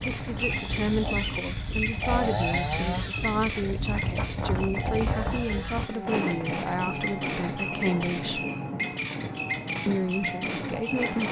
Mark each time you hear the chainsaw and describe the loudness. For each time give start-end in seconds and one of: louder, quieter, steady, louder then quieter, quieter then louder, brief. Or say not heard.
0.1-11.1 quieter.